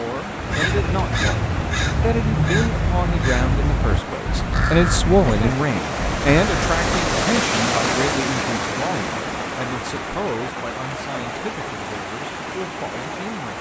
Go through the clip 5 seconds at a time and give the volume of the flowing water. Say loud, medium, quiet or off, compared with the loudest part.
medium, loud, medium.